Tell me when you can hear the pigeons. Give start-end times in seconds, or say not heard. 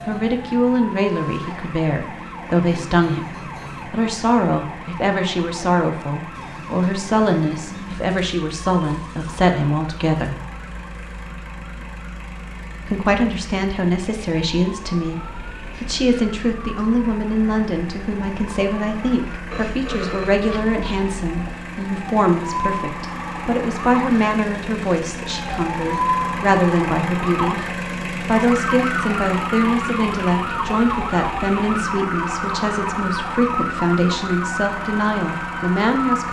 not heard.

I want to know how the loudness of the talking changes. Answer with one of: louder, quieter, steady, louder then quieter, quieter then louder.
steady.